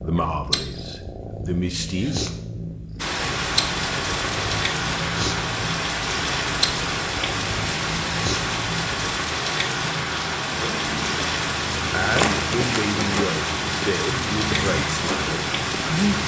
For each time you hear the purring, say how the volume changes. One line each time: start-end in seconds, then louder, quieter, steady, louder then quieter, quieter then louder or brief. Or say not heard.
0.0-16.2 steady.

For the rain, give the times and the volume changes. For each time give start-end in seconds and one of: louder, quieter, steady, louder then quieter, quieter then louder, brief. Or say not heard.
3.0-16.2 steady.